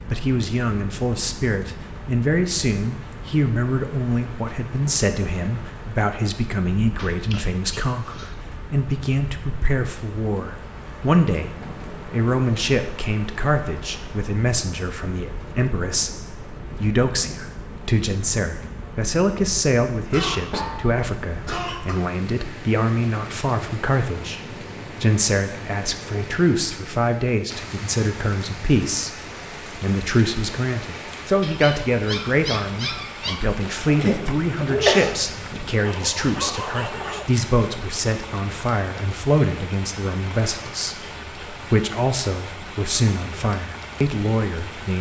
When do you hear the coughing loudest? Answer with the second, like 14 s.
35 s.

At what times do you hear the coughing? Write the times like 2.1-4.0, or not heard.
7.0-8.3, 20.1-21.9, 34.0-35.1.